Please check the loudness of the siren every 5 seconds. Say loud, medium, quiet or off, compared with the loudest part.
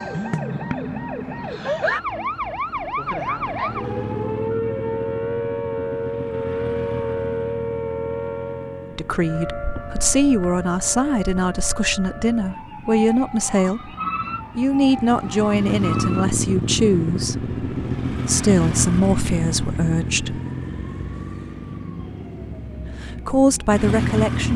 loud, loud, medium, medium, quiet.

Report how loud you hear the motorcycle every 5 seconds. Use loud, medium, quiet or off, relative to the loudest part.
medium, medium, quiet, loud, loud.